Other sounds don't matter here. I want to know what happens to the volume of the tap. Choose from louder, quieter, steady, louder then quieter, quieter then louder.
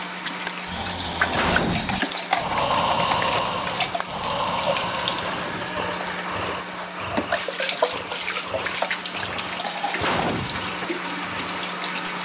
steady.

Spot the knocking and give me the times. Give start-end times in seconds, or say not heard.
not heard.